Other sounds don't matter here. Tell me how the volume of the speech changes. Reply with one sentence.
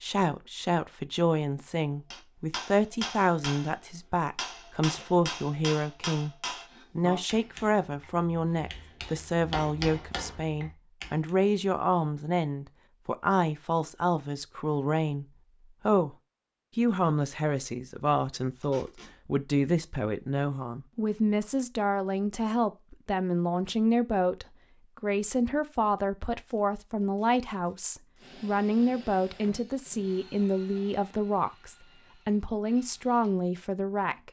The loudness of the speech stays about the same.